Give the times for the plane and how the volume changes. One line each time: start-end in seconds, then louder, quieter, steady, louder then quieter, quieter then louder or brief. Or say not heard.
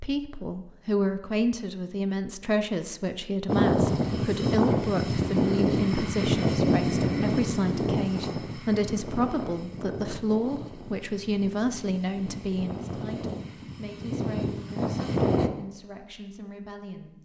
3.5-15.5 quieter then louder.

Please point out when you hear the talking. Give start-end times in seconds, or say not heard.
0.0-17.2.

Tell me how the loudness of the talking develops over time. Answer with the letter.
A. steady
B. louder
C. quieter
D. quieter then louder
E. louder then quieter
C.